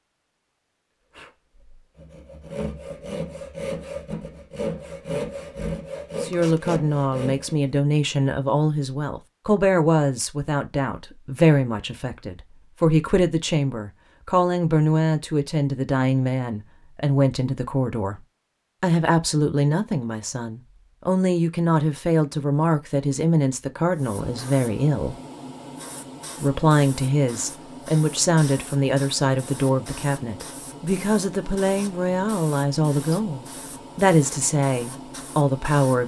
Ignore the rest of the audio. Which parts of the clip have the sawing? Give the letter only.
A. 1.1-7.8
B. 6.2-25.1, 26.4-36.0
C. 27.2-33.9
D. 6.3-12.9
A.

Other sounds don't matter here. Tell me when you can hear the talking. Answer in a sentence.
The talking can be heard from 6.2 to 25.1 s and from 26.4 to 36.0 s.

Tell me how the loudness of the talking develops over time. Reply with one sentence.
The loudness of the talking stays about the same.